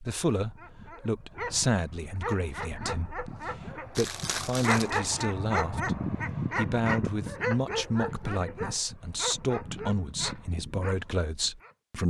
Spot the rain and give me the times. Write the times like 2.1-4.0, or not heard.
not heard.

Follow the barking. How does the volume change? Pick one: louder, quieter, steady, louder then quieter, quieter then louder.
louder then quieter.